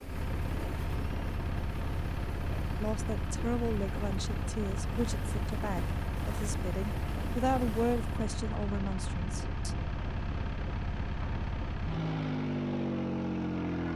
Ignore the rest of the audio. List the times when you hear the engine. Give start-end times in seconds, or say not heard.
0.0-13.9.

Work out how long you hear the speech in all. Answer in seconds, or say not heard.
7 s.